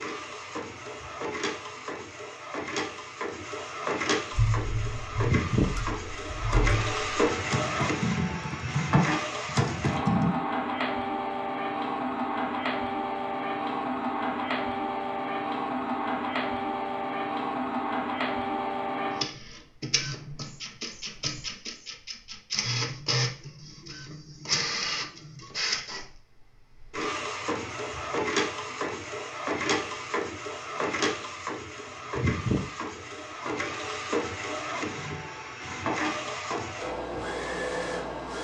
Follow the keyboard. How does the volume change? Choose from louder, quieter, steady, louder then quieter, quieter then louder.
louder.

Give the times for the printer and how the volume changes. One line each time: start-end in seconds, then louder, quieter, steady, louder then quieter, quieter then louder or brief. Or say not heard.
0.0-38.3 steady.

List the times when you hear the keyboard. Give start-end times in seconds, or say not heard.
4.3-10.3.